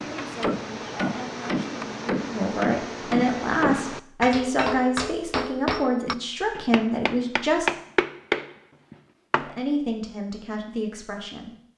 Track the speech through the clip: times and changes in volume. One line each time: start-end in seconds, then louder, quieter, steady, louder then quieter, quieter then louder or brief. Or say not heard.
0.0-7.7 louder
9.3-11.5 brief.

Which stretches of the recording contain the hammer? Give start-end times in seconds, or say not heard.
0.0-9.6.